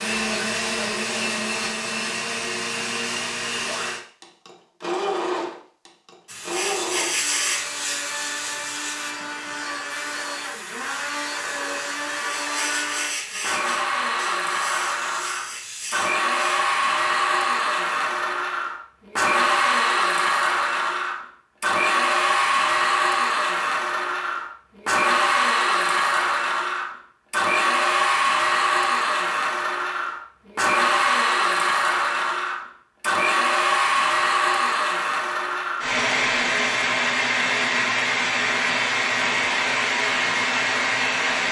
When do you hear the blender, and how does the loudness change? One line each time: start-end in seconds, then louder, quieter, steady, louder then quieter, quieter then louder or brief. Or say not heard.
0.0-41.4 louder.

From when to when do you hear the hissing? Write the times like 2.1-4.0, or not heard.
6.2-16.6.